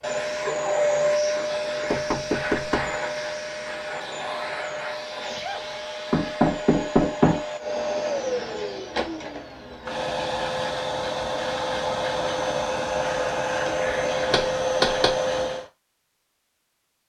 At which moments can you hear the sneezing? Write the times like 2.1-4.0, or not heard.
5.2-5.8.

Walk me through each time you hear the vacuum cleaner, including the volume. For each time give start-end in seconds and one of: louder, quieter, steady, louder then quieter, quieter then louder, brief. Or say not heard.
0.0-15.7 quieter then louder.